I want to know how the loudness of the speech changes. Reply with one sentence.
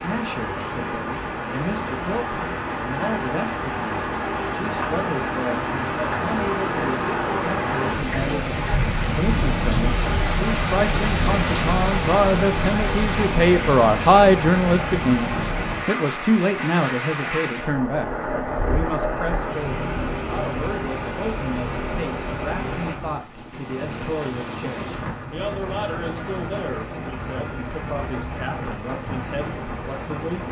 The loudness of the speech goes up, then down.